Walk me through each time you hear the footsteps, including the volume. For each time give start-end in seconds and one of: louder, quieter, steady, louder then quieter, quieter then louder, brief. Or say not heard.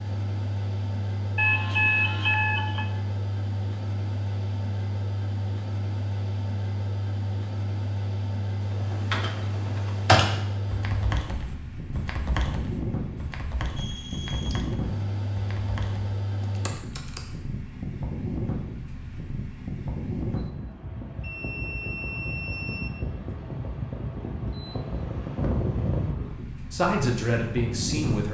not heard.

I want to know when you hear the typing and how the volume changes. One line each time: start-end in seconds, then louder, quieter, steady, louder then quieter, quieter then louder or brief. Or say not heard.
8.7-17.2 quieter.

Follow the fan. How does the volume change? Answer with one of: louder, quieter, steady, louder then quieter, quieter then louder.
steady.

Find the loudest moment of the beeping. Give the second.
2 s.